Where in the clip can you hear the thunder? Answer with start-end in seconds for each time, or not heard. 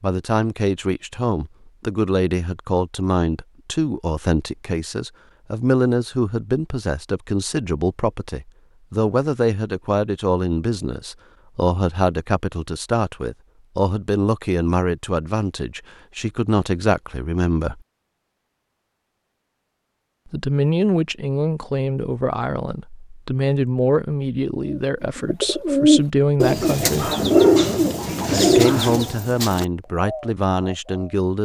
not heard.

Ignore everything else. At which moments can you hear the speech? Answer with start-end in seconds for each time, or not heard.
0.0-17.8, 20.3-27.1, 28.3-31.3.